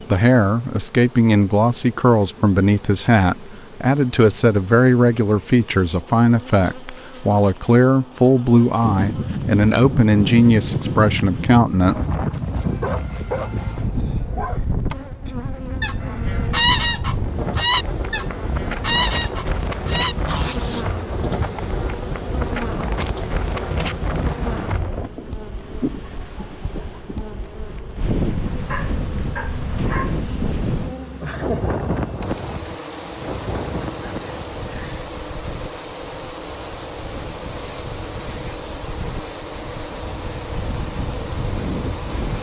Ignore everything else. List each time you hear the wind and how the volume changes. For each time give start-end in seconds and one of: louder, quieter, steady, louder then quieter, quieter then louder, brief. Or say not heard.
8.8-42.3 quieter.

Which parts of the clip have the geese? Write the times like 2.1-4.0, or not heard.
15.8-20.9.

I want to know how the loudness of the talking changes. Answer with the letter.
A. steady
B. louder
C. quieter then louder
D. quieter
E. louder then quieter
A.